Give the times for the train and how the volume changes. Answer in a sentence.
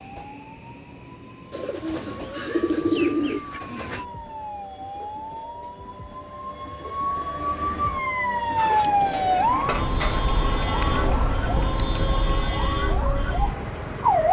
You can hear the train from 0.0 to 14.2 s, getting louder.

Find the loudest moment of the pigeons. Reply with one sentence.
The loudest moment of the pigeons is at 3 seconds.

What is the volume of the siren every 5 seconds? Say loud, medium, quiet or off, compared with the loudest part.
quiet, loud, loud.